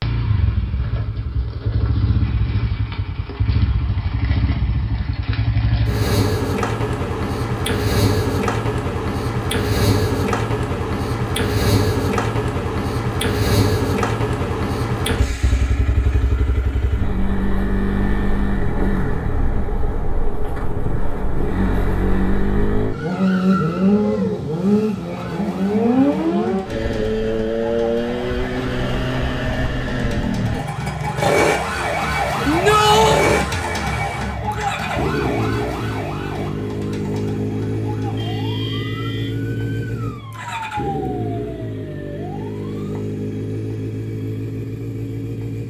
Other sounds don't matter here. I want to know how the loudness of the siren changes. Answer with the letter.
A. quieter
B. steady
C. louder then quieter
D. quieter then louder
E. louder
C.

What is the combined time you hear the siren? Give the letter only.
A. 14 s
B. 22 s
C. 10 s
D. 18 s
D.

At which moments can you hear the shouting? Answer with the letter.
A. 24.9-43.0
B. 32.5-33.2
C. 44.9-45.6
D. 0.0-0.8
B.